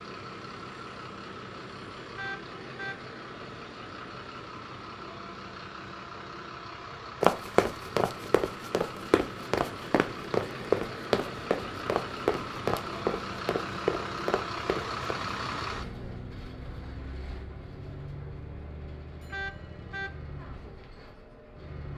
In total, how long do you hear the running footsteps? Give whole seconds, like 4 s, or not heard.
8 s.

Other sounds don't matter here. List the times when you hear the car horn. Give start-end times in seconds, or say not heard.
2.1-3.0, 19.3-20.1.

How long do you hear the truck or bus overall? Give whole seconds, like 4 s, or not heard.
22 s.